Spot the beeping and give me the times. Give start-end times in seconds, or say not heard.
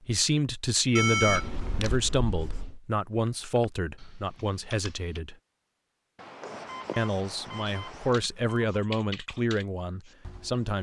0.9-2.0, 6.7-8.8.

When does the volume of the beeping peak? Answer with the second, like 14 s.
1 s.